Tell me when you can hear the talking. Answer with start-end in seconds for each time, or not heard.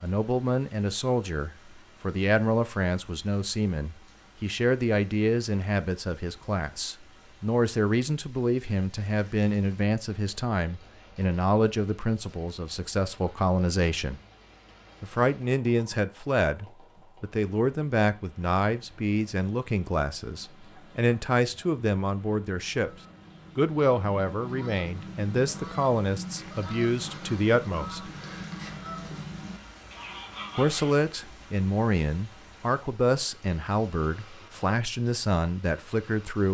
0.0-14.2, 15.0-22.9, 23.6-28.1, 30.6-36.4.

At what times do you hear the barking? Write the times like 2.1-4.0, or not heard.
not heard.